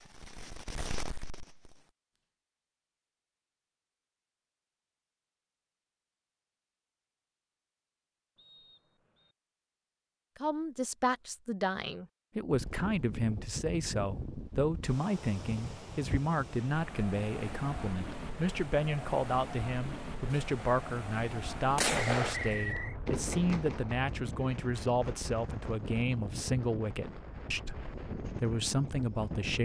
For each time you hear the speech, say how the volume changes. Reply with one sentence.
You can hear the speech from 10.3 to 29.5 s, at a steady volume.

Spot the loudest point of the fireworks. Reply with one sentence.
The loudest moment of the fireworks is at 22 seconds.